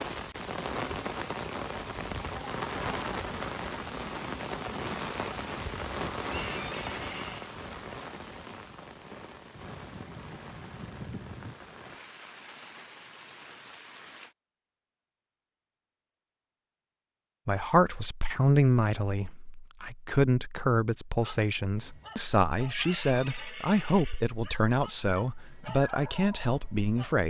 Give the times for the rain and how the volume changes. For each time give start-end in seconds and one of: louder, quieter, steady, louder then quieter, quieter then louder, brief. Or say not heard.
0.0-14.3 quieter.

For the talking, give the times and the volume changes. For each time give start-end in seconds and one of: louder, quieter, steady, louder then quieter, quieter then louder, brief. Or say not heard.
17.4-27.2 steady.